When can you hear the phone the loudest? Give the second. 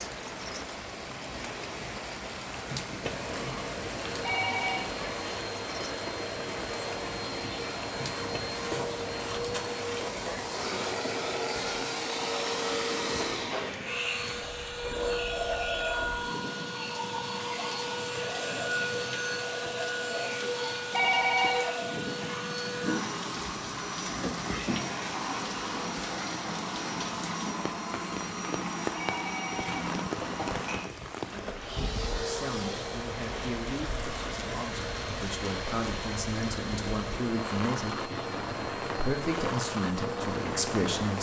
21 s.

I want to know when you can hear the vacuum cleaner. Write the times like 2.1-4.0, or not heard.
3.0-41.1.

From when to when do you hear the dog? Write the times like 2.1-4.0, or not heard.
not heard.